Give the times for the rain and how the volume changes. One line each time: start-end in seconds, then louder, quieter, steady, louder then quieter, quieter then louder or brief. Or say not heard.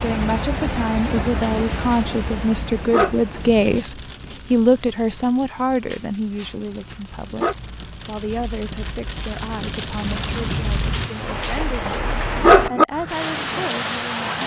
0.0-14.4 quieter then louder.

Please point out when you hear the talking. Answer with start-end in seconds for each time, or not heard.
0.0-14.4.